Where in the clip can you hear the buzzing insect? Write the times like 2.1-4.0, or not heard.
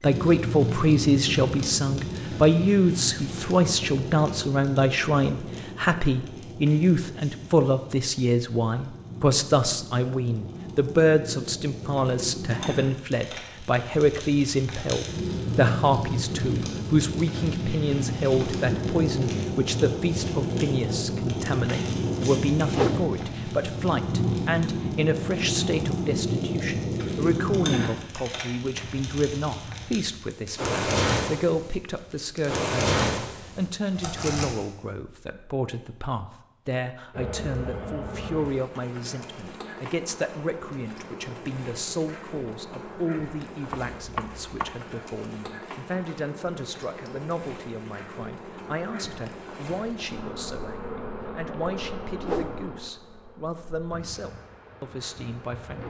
37.1-55.8.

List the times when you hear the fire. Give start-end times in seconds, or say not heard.
0.0-34.6.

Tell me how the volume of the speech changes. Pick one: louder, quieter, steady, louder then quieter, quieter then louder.
quieter.